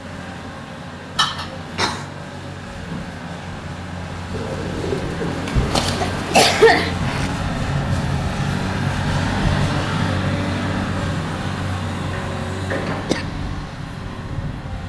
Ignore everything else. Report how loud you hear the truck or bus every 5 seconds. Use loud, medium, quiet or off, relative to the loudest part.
medium, loud, loud.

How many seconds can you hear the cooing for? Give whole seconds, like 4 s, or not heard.
2 s.